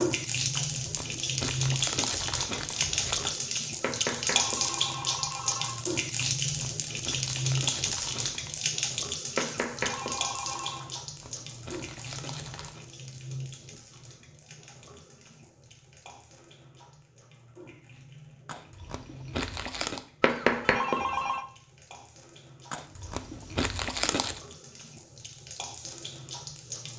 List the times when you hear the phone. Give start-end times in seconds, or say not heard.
3.8-5.8, 9.3-10.8, 20.2-21.4.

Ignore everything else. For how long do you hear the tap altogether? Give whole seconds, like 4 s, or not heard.
27 s.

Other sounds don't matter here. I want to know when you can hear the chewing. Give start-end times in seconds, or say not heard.
0.6-3.5, 6.2-8.6, 10.8-12.8, 18.4-20.1, 22.7-24.4.